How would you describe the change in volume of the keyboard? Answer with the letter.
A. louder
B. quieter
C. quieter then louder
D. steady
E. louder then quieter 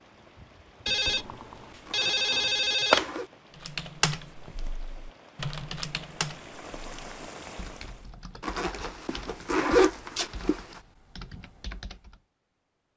B.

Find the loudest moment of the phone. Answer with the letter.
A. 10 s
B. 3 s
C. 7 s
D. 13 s
B.